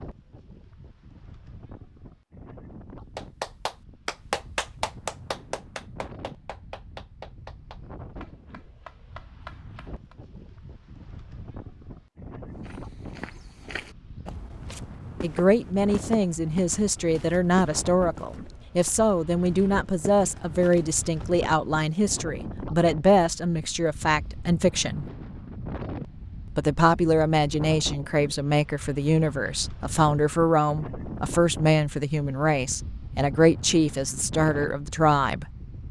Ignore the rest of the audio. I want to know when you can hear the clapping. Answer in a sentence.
You can hear the clapping from 3.1 to 10.2 s.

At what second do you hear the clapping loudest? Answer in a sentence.
The volume of the clapping peaks at 4 seconds.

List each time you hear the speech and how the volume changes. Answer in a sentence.
The speech can be heard from 15.2 to 25.1 s, at a steady volume; and from 26.6 to 35.5 s, at a steady volume.